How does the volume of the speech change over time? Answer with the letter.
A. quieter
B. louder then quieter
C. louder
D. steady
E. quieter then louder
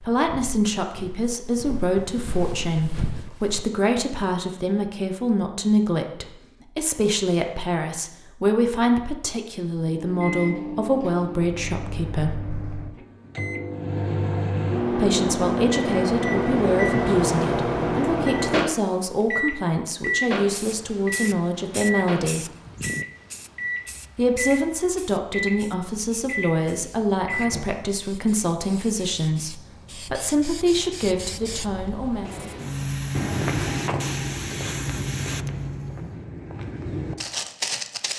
D.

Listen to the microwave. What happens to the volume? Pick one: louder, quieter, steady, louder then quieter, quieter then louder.
louder then quieter.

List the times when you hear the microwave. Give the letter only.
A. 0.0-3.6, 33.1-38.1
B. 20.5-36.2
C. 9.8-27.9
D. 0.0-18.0
C.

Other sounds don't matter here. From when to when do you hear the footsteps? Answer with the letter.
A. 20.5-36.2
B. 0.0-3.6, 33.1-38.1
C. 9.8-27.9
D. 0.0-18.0
B.